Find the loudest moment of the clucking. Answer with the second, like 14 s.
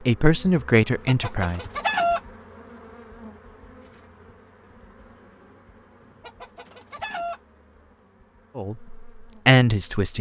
2 s.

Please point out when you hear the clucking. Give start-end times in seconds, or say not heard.
1.1-2.2, 6.2-7.4.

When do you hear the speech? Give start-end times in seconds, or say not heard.
0.1-1.6, 8.6-10.1.